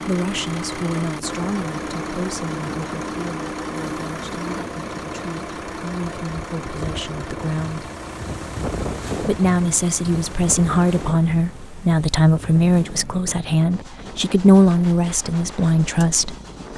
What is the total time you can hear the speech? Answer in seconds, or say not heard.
15 s.